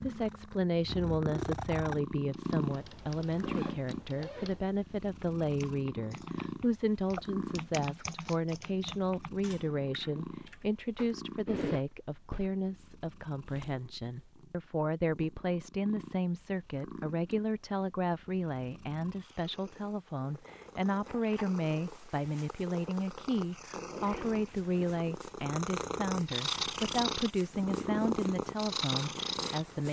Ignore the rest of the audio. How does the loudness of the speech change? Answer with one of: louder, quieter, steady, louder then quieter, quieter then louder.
steady.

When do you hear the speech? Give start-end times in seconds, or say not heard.
0.0-29.8.